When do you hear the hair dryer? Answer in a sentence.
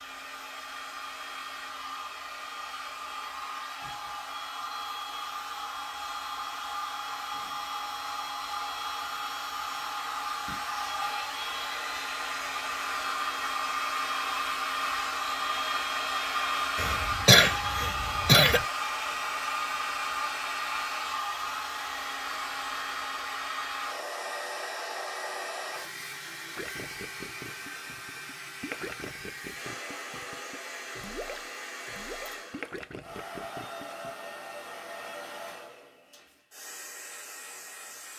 You can hear the hair dryer from 0.0 to 38.1 s.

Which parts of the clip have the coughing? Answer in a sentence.
You can hear the coughing from 16.8 to 18.6 s.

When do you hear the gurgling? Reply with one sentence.
The gurgling can be heard from 26.4 to 34.1 s.